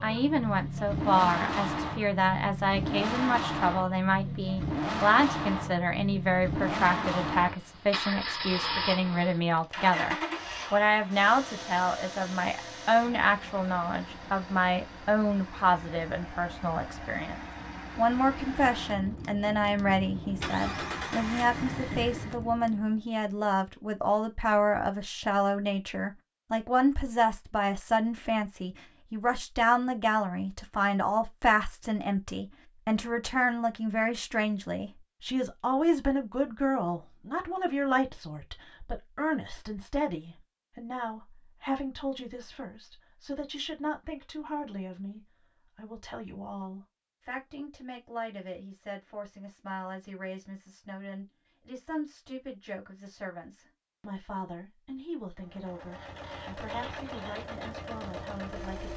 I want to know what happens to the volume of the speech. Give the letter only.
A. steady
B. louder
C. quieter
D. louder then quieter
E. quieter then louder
C.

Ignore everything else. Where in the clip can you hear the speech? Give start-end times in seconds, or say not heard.
0.0-58.9.